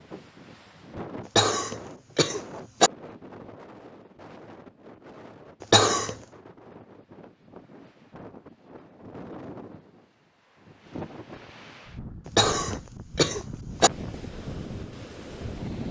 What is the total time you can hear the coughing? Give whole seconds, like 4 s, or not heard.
4 s.